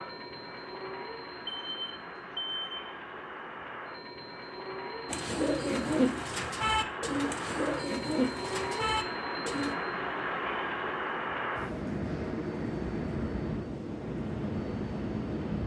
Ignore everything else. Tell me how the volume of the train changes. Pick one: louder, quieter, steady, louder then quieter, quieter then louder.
louder.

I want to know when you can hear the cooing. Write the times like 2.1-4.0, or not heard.
5.0-9.8.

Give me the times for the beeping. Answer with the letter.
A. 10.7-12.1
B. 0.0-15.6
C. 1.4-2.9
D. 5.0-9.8
C.